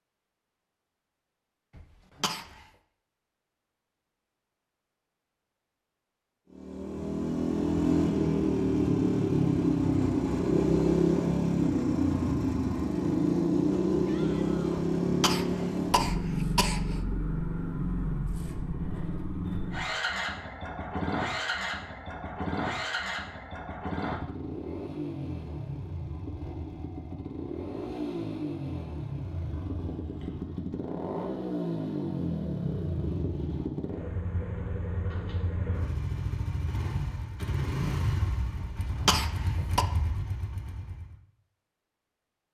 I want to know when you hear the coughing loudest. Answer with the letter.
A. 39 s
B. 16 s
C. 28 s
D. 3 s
A.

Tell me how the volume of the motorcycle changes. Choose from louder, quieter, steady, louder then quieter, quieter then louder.
quieter.